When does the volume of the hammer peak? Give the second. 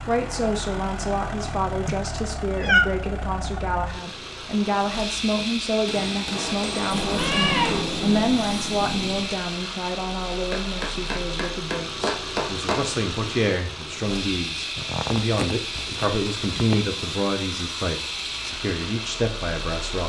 12 s.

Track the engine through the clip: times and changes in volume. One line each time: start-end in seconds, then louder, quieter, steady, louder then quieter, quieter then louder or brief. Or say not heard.
0.0-20.0 steady.